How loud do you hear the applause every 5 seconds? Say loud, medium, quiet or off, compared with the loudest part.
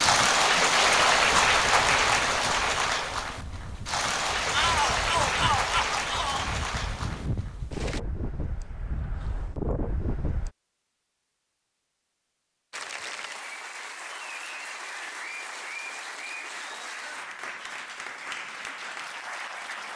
loud, medium, quiet, quiet.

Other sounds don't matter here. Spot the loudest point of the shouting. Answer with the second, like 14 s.
5 s.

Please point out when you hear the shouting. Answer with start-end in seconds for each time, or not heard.
4.5-6.5.